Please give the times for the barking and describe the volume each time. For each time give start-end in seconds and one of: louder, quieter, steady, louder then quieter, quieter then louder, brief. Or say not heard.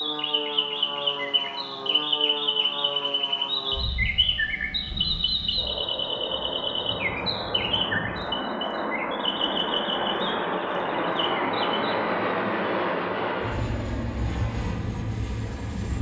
not heard.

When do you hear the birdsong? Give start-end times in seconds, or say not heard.
0.0-11.9.